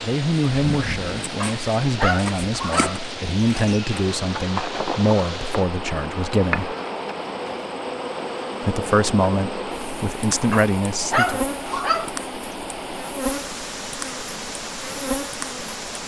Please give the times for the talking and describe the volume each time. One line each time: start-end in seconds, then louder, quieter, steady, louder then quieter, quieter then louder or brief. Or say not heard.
0.0-6.8 steady
8.6-11.4 brief.